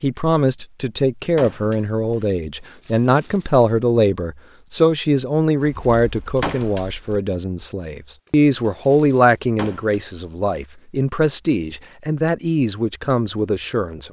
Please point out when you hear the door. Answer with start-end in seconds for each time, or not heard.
1.4-2.2, 6.4-6.8, 9.6-10.0.